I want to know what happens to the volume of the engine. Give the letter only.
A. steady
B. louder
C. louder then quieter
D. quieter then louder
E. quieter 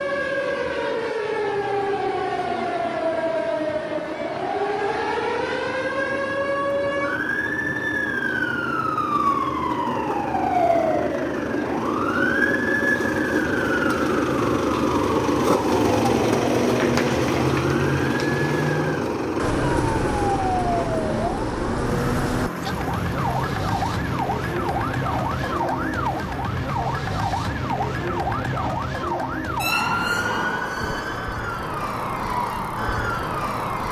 C.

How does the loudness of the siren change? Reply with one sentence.
The volume of the siren stays about the same.